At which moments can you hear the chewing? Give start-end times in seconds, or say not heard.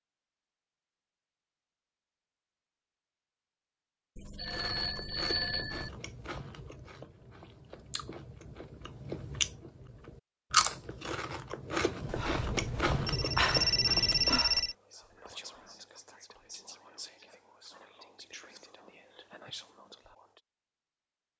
4.5-14.3.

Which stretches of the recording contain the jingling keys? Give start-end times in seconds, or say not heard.
not heard.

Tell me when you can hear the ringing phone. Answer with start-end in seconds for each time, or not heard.
4.2-5.9, 12.1-14.8.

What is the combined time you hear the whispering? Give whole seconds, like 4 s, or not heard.
6 s.